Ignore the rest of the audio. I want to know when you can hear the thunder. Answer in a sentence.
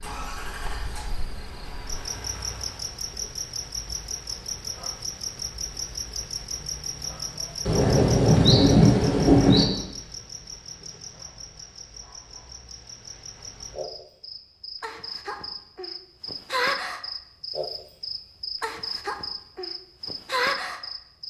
You can hear the thunder from 7.7 to 9.7 s.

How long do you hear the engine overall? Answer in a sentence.
You can hear the engine for 3 seconds altogether.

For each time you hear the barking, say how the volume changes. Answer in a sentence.
You can't hear the barking here.